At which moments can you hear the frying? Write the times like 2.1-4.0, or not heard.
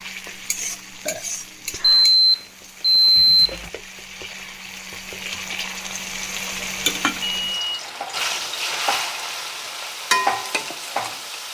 0.0-11.5.